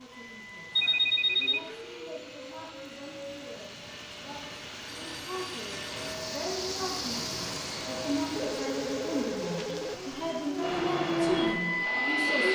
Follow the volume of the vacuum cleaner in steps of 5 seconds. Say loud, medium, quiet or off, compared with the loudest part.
quiet, quiet, loud.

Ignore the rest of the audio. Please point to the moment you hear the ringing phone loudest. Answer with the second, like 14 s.
1 s.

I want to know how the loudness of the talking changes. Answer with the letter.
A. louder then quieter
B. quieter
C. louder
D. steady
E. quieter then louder
C.